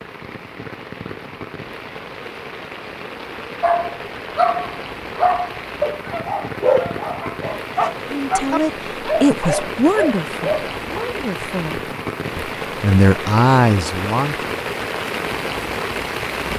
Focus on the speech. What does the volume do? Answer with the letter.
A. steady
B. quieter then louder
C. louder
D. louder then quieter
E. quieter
B.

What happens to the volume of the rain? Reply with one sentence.
The loudness of the rain goes up.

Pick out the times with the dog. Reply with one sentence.
You can hear the dog from 3.6 to 11.0 s.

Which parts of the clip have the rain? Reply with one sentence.
You can hear the rain from 0.0 to 16.5 s.